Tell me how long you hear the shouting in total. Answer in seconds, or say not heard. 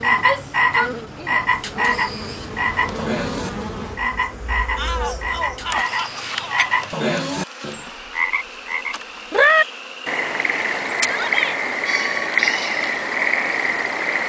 4 s.